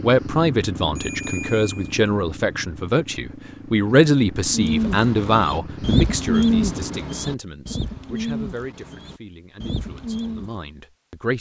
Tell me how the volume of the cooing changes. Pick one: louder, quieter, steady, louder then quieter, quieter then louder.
louder then quieter.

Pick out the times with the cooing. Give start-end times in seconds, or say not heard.
4.5-10.6.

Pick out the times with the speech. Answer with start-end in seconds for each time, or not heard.
0.0-11.3.